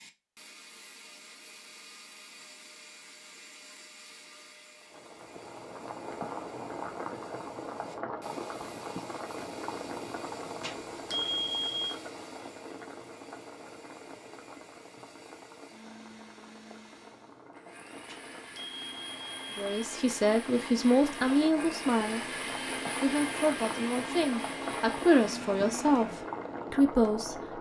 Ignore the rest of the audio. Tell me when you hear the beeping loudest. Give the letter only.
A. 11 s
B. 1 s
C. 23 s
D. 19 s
A.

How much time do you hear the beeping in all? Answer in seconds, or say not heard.
3 s.